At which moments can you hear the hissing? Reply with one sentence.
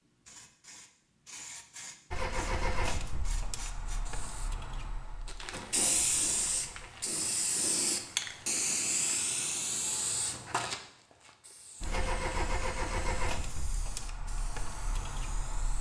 You can hear the hissing from 0.0 to 15.7 s.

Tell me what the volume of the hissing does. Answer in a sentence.
The loudness of the hissing goes up, then down.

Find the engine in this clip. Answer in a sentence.
The engine can be heard from 2.1 to 6.9 s and from 11.8 to 15.7 s.